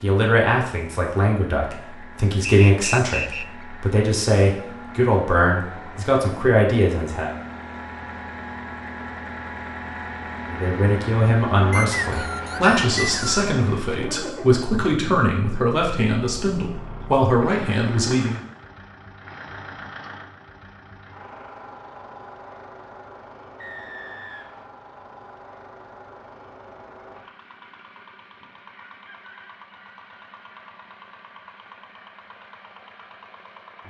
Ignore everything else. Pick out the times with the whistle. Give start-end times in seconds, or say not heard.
2.5-3.6, 11.7-13.4, 23.6-24.6.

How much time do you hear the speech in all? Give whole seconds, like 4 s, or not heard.
15 s.